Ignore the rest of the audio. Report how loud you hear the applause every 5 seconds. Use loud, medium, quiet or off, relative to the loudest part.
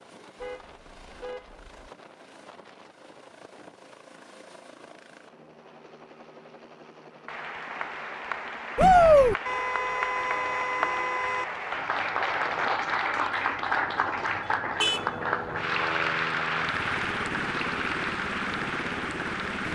off, medium, loud, loud.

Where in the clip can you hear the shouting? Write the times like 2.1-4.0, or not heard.
8.8-9.3.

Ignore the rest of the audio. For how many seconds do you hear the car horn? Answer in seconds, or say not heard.
4 s.